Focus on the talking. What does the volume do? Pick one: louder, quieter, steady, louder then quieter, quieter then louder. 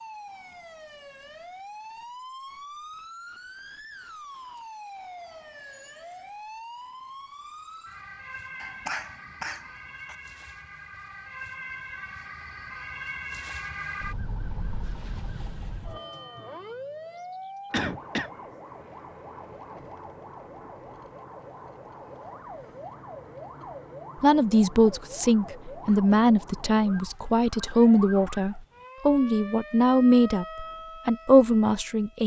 steady.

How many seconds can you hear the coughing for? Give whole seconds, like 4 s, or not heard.
2 s.